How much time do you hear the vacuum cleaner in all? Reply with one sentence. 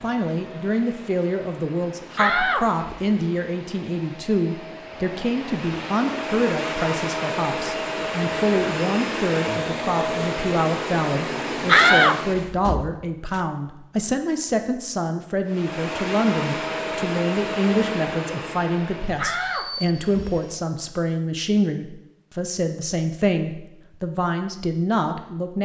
The vacuum cleaner can be heard for 18 seconds in total.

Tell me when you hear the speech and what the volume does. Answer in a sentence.
You can hear the speech from 0.0 to 25.5 s, at a steady volume.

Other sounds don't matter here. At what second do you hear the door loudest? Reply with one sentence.
The volume of the door peaks at 12 seconds.